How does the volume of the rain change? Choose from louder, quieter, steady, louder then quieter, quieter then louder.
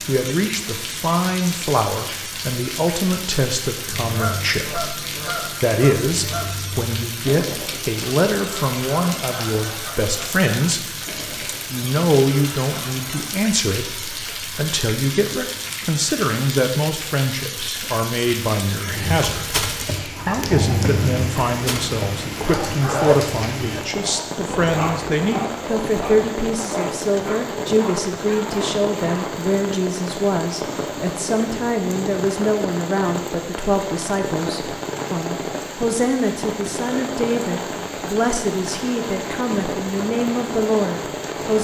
steady.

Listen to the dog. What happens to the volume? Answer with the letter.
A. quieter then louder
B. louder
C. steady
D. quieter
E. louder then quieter
D.